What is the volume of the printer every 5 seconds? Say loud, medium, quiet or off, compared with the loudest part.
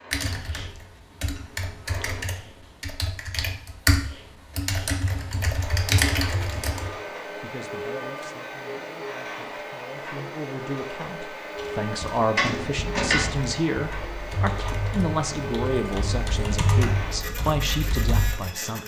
medium, loud, loud, loud.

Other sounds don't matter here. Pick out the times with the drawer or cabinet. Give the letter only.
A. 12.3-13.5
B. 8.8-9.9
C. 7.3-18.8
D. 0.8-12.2
A.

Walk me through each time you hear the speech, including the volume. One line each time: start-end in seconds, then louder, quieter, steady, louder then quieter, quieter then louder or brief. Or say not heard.
7.3-18.8 louder.